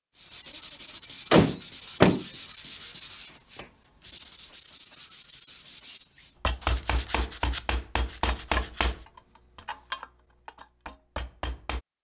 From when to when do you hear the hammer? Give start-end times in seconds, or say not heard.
6.4-11.8.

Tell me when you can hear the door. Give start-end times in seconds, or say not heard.
1.3-2.2.